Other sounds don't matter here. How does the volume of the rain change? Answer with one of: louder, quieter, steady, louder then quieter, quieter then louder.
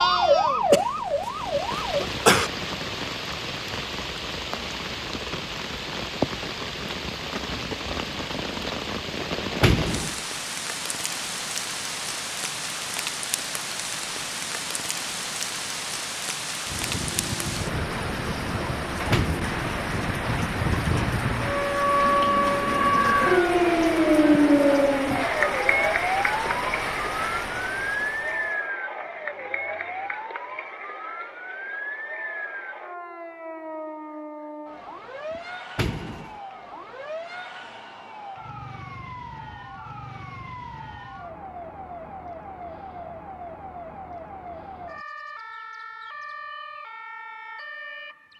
steady.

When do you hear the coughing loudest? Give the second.
2 s.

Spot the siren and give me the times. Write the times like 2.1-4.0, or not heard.
0.0-2.1, 16.6-48.3.